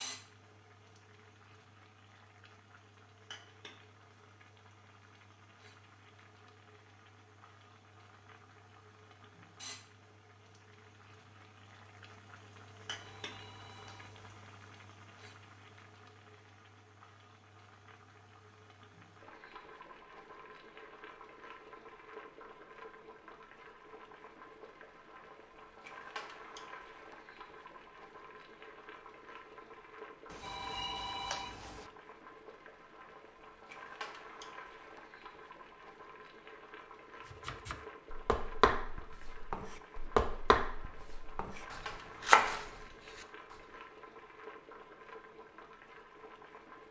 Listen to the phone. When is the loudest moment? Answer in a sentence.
The loudest moment of the phone is at 31 seconds.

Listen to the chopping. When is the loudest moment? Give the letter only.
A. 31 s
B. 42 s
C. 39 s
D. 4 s
B.